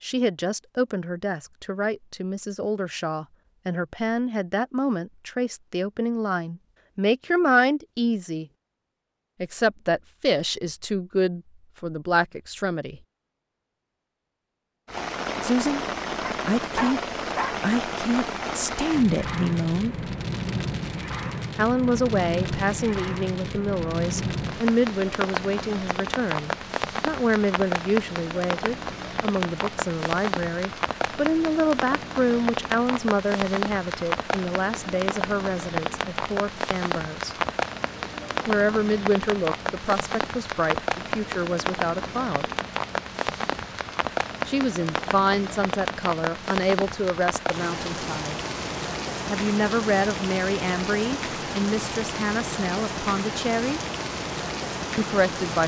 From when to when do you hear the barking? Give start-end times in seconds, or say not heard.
16.2-17.6.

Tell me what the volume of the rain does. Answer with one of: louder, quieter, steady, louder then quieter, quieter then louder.
steady.